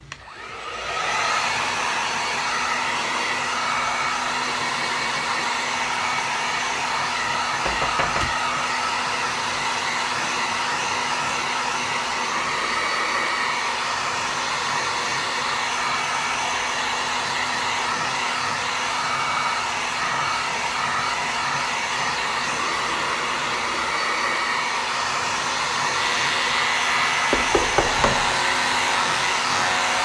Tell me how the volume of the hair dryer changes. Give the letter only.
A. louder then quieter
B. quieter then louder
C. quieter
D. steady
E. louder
D.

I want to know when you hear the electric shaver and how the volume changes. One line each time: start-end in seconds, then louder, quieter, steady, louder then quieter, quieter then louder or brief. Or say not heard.
25.9-30.0 steady.